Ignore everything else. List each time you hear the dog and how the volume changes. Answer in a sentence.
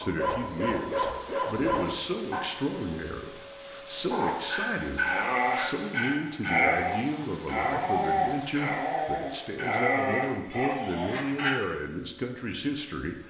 The dog can be heard briefly from 0.0 to 2.4 s; and from 4.1 to 11.6 s, at a steady volume.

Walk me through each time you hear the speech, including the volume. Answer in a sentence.
The speech can be heard from 0.0 to 13.2 s, at a steady volume.